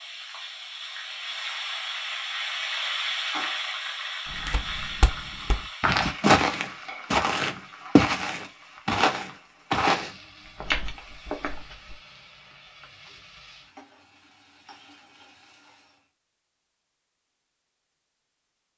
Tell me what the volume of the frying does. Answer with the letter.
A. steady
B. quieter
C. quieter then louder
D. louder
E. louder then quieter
B.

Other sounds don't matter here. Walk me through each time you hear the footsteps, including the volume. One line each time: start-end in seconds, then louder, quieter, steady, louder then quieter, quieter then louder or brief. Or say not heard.
4.2-11.9 louder then quieter.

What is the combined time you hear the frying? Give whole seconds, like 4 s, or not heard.
16 s.